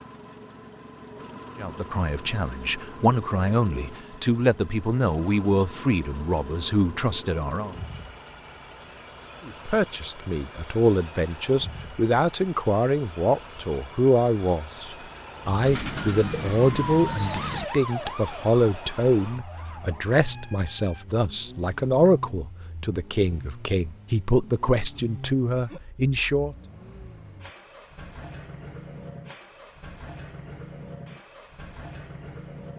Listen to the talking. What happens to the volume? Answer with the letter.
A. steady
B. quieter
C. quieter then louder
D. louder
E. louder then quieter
A.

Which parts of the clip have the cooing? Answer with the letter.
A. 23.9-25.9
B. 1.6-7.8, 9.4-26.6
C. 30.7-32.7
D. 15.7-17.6
D.